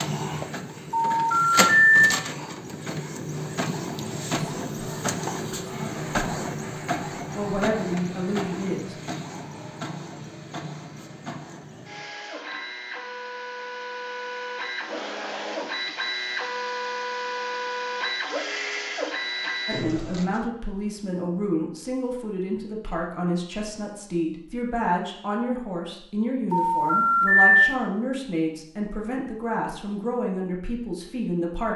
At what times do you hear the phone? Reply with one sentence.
The phone can be heard from 0.9 to 2.0 s and from 26.5 to 27.6 s.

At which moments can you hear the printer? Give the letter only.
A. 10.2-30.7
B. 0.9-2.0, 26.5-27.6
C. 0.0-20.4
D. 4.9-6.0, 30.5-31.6
C.